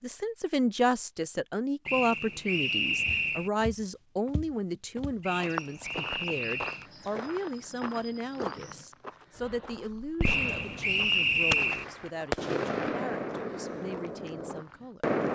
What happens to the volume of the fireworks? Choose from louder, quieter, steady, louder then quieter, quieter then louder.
louder then quieter.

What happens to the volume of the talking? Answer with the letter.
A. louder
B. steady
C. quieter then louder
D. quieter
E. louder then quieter
D.